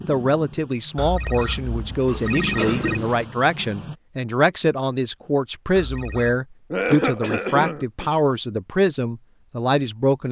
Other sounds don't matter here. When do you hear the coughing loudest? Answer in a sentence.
The loudest moment of the coughing is at 7 seconds.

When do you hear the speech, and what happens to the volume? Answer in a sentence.
The speech can be heard from 0.1 to 10.2 s, at a steady volume.